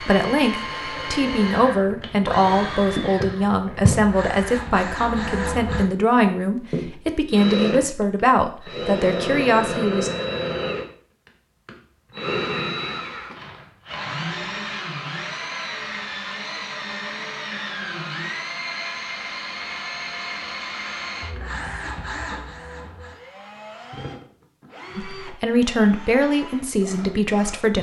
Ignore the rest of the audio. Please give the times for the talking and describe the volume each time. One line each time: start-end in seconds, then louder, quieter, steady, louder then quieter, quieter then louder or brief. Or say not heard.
0.0-10.1 steady
24.9-27.7 brief.